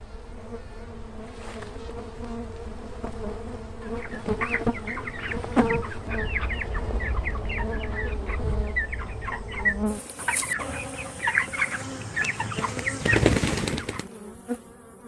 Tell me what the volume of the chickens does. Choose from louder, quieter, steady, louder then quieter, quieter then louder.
louder.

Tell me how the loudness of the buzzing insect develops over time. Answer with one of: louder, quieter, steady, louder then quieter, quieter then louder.
louder then quieter.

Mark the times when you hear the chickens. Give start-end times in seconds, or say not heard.
4.0-14.1.